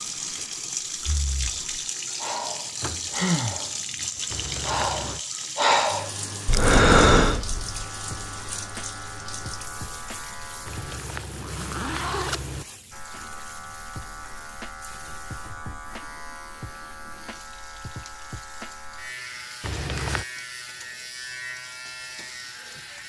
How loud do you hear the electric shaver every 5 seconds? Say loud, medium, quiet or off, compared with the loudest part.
off, loud, loud, loud, loud.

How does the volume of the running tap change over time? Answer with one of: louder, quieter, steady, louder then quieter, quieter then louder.
quieter.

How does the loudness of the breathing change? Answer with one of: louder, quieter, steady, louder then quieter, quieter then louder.
louder.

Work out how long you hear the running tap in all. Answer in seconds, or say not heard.
23 s.